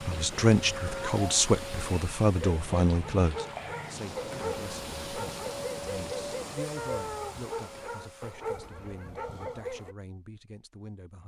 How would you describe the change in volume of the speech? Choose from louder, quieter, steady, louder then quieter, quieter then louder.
quieter.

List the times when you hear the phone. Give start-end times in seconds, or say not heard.
not heard.